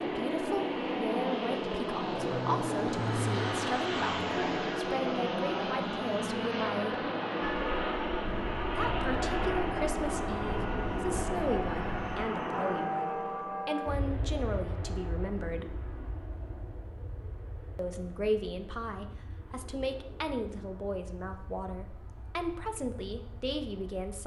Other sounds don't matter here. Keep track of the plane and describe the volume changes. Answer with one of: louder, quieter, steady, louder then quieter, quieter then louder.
quieter.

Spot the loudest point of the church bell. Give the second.
13 s.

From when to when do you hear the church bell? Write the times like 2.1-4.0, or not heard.
7.4-13.9.